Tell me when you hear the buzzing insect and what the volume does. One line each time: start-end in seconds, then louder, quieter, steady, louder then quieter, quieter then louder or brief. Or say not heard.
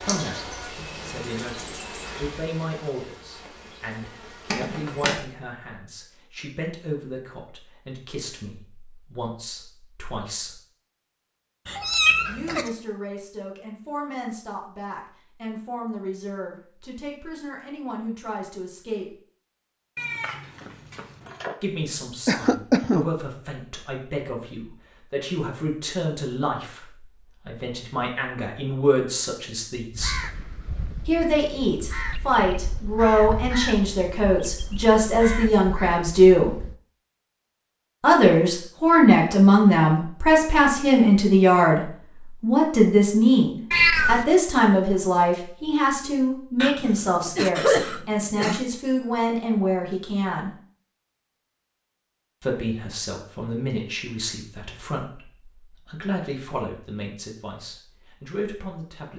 0.0-5.2 quieter then louder.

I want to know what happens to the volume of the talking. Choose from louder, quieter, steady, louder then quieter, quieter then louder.
louder then quieter.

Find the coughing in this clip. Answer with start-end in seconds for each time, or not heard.
22.2-23.1, 46.6-48.6.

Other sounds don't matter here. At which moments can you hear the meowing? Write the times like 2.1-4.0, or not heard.
11.7-12.7, 19.9-21.6, 43.7-44.2.